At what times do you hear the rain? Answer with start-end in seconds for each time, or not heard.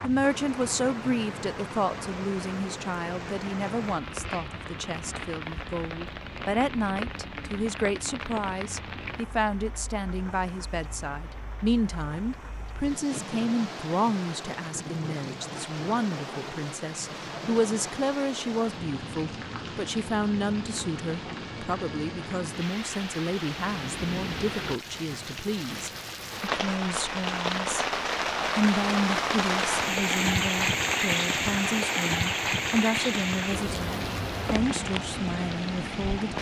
0.0-36.3.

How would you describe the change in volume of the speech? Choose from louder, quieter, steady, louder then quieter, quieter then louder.
steady.